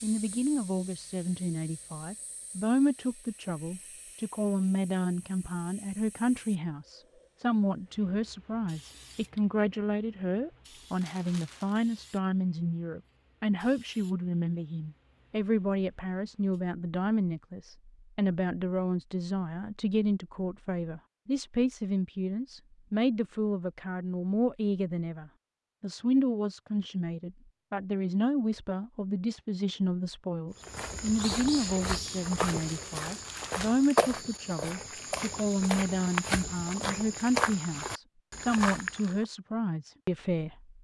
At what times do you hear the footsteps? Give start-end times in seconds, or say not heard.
30.6-39.2.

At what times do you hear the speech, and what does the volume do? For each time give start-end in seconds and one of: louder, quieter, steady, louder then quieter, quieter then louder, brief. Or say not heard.
0.0-40.7 steady.